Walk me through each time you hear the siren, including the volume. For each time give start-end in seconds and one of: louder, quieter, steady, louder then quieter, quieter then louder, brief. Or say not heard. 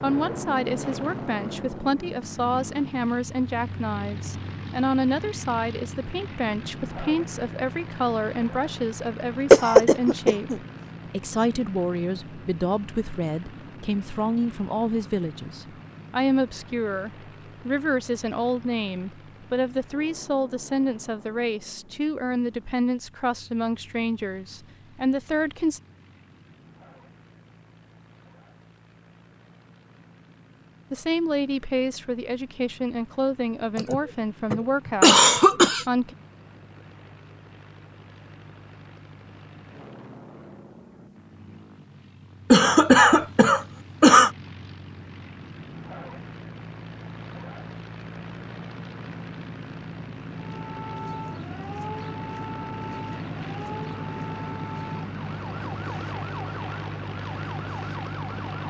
50.4-58.6 steady.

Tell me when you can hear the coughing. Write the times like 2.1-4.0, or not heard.
9.5-10.6, 33.8-35.9, 42.5-44.3.